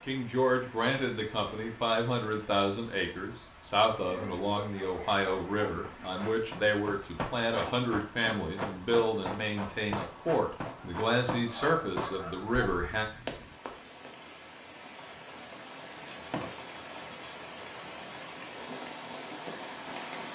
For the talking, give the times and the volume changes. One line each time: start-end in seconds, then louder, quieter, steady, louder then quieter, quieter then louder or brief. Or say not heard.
0.1-13.1 steady.